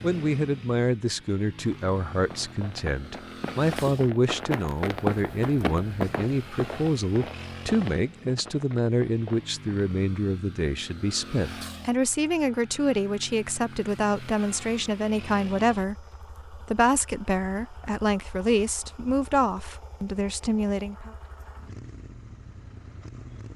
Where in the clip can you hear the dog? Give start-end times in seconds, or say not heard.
not heard.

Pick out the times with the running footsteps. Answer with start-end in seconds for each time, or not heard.
1.6-9.9.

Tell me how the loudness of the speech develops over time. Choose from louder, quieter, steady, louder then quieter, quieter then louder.
steady.